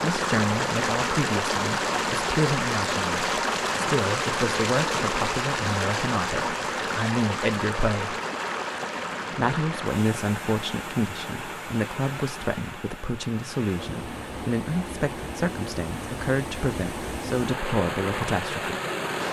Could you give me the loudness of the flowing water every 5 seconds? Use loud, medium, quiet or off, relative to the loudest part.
loud, loud, medium, medium.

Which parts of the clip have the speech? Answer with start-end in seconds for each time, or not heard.
0.0-8.2, 9.3-18.8.